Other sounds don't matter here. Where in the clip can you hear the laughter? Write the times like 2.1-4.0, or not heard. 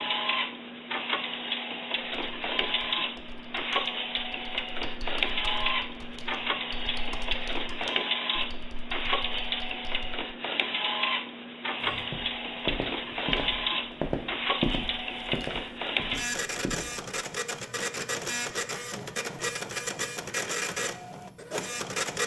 not heard.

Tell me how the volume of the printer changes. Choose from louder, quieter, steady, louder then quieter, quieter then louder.
steady.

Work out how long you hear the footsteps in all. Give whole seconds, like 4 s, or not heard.
5 s.